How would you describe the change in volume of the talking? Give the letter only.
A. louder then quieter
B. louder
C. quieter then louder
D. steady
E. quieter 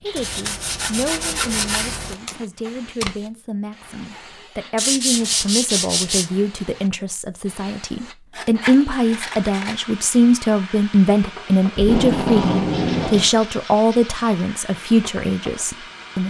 B.